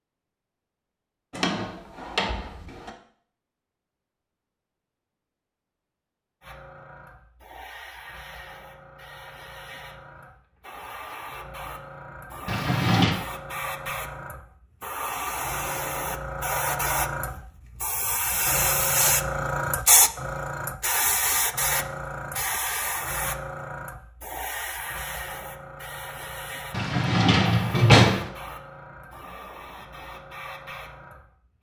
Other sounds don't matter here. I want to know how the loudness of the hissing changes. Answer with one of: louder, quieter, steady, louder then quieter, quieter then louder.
louder then quieter.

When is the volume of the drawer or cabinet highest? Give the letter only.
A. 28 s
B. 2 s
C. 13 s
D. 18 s
A.